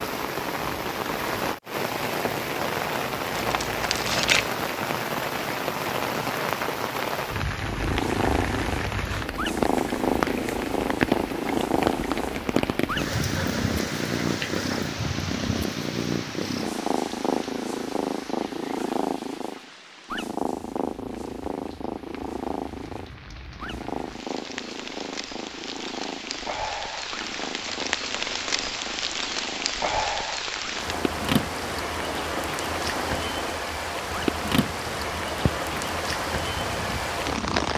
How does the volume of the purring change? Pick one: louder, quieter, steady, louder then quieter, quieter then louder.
quieter.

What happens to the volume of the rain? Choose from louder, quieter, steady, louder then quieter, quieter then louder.
quieter then louder.